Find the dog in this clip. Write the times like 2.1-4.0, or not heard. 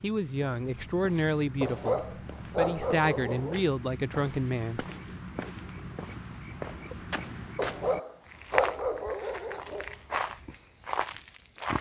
1.6-3.6, 7.5-9.9.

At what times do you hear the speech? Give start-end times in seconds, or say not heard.
0.0-4.8.